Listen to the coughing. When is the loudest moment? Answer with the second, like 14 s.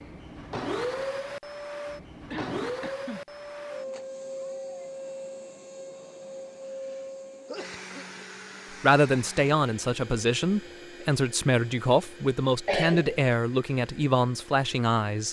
13 s.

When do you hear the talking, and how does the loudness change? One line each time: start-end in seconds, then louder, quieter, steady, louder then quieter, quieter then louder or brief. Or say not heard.
8.8-15.2 steady.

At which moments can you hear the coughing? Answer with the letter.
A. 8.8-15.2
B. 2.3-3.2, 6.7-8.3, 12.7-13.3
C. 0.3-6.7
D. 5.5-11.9
B.